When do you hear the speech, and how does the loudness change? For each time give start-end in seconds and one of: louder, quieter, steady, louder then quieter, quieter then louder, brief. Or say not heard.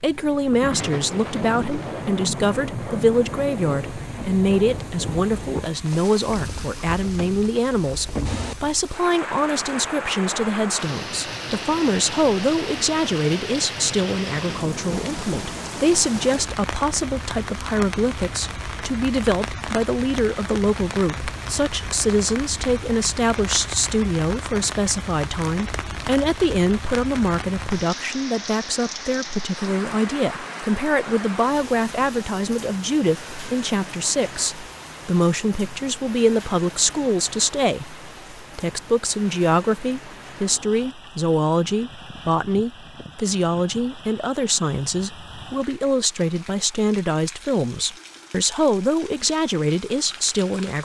0.0-50.8 steady.